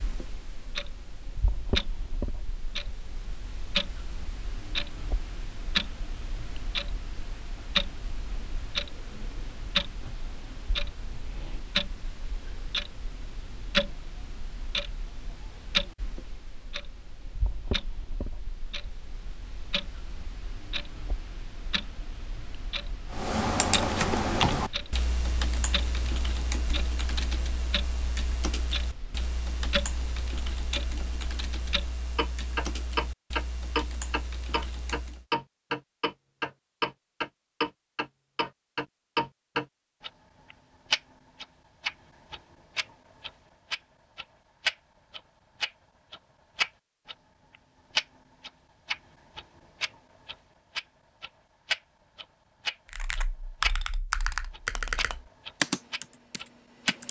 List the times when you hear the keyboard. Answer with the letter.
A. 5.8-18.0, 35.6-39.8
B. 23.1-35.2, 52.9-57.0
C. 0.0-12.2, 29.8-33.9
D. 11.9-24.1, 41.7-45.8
B.